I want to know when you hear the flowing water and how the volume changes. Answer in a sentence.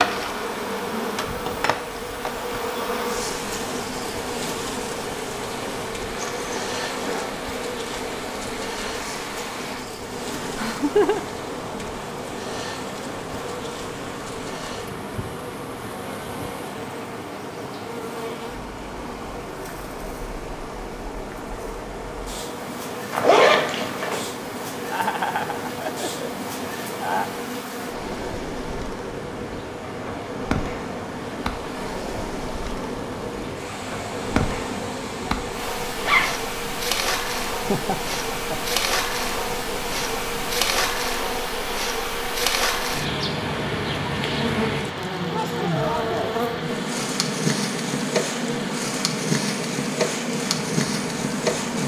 The flowing water can be heard from 0.0 to 51.8 s, at a steady volume.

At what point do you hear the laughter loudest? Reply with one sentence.
The loudest moment of the laughter is at 11 seconds.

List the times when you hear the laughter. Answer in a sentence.
The laughter can be heard from 10.4 to 11.2 s, from 24.9 to 27.2 s and from 37.5 to 38.8 s.